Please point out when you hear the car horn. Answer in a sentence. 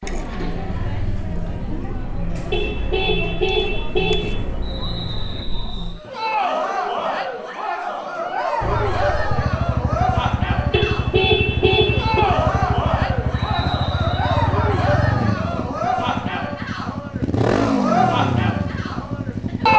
The car horn can be heard from 2.5 to 4.3 s and from 10.7 to 12.2 s.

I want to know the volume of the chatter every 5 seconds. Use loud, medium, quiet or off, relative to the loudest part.
medium, loud, loud, loud.